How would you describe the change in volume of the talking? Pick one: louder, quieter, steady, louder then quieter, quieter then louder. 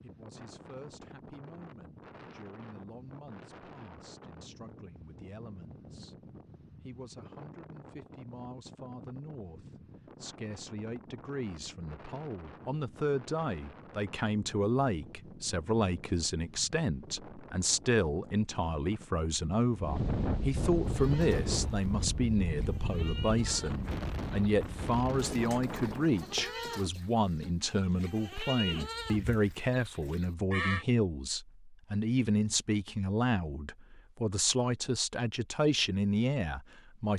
louder.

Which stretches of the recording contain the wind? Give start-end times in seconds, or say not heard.
0.0-26.4.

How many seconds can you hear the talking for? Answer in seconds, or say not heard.
37 s.